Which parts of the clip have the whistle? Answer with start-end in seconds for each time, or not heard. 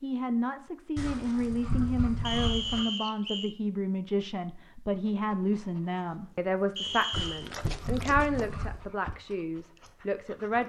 2.2-3.5, 6.8-7.5.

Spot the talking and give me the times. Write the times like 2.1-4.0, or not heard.
0.0-10.6.